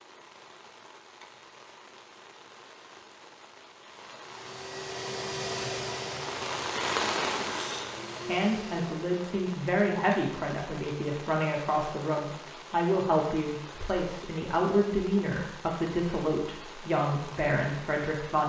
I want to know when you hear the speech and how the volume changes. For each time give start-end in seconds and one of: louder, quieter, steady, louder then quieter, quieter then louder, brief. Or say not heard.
8.2-18.4 steady.